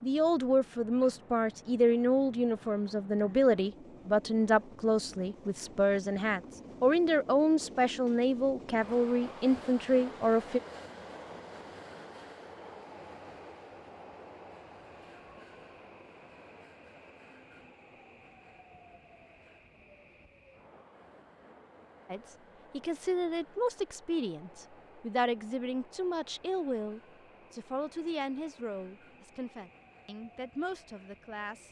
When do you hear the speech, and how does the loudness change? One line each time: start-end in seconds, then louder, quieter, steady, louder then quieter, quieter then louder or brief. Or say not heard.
0.0-10.6 steady
22.1-31.6 quieter.